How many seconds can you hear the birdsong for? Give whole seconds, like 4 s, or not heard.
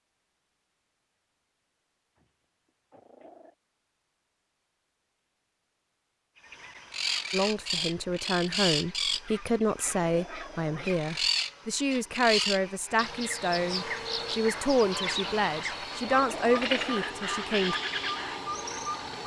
13 s.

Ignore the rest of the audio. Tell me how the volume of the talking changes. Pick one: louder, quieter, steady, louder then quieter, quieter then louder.
steady.